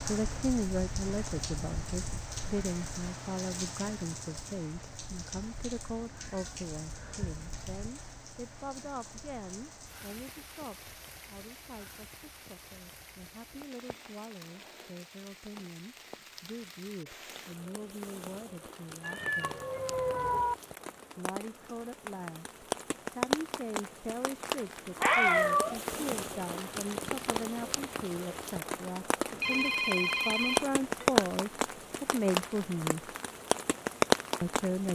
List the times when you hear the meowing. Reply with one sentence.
You can hear the meowing from 6.0 to 7.7 s, from 19.0 to 20.6 s and from 24.9 to 26.2 s.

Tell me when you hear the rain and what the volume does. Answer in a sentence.
The rain can be heard from 0.0 to 34.9 s, getting quieter then louder.